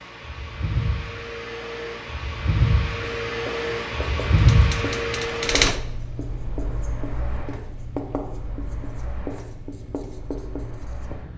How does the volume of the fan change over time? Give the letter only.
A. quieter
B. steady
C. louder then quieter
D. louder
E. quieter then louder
C.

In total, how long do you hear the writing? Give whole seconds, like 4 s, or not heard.
8 s.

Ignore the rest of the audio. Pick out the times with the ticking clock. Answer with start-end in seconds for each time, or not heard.
not heard.